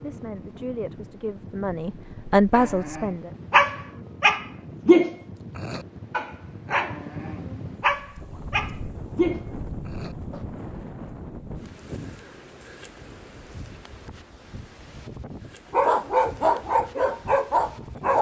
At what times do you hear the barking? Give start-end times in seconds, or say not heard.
2.5-10.4, 15.7-18.1.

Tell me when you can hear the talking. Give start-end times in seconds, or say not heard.
0.0-3.4.